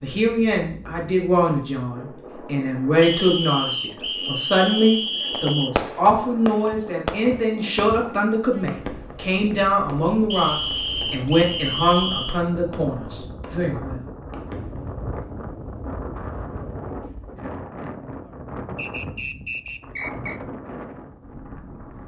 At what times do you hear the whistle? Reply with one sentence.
The whistle can be heard from 3.0 to 5.7 s, from 10.3 to 12.4 s and from 18.8 to 20.4 s.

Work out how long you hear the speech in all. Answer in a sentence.
The speech can be heard for 14 seconds in total.